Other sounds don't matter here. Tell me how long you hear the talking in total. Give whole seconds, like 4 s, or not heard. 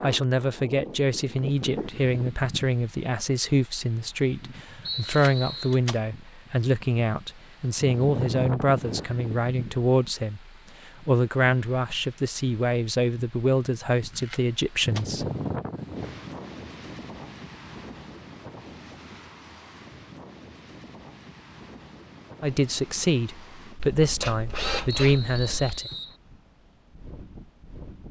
19 s.